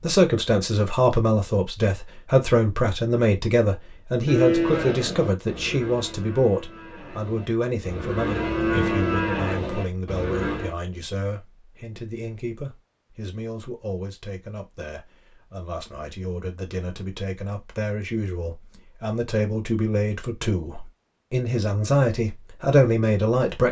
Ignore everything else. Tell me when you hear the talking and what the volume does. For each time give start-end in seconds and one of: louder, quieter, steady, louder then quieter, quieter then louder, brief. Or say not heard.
0.0-23.6 quieter then louder.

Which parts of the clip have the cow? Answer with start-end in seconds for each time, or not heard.
4.2-10.8.